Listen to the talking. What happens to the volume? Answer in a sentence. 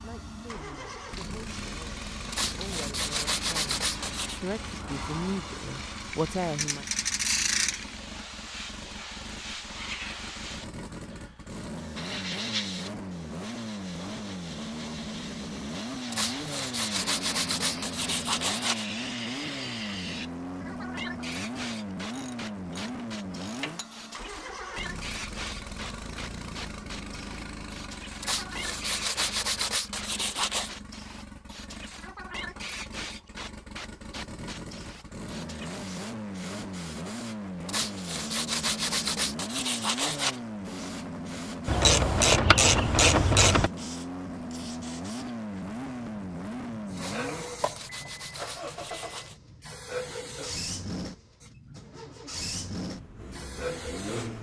The volume of the talking goes up.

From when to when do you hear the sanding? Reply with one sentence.
You can hear the sanding from 2.3 to 4.4 s, from 16.1 to 18.9 s, from 28.2 to 30.8 s, from 37.6 to 40.4 s and from 47.0 to 49.4 s.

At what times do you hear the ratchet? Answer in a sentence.
The ratchet can be heard from 6.5 to 7.8 s, from 22.1 to 23.9 s and from 41.6 to 43.7 s.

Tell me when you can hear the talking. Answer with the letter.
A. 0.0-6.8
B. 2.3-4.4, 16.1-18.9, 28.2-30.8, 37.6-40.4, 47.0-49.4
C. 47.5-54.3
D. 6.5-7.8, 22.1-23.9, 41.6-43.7
A.